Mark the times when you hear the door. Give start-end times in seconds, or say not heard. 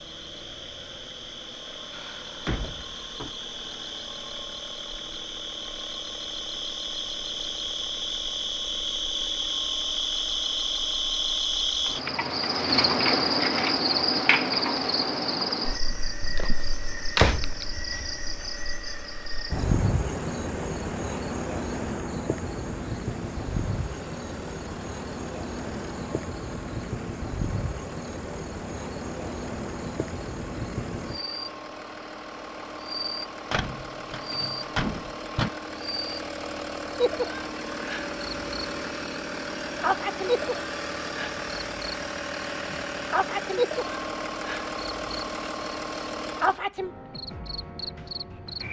1.9-3.3, 17.1-18.0, 33.5-35.5.